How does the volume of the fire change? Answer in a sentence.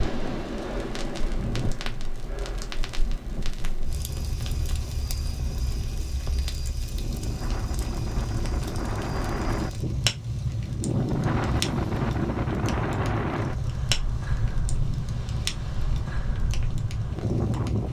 The loudness of the fire goes up.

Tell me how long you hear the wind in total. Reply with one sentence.
You can hear the wind for 18 seconds altogether.